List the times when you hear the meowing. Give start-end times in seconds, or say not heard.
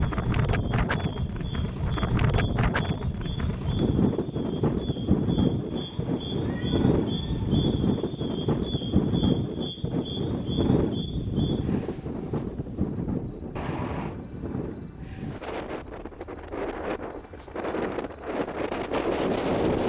5.7-7.7, 13.6-14.2.